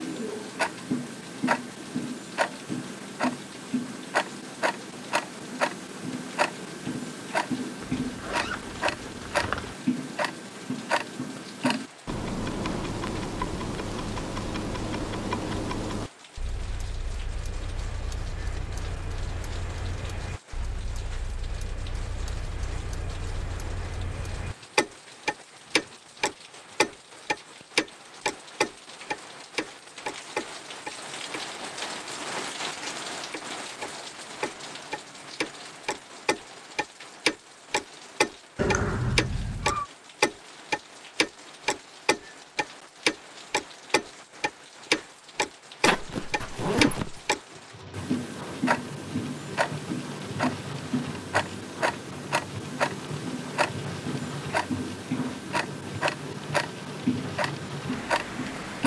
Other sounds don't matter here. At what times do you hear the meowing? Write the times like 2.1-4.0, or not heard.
38.5-39.9.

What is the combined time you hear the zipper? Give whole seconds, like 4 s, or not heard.
3 s.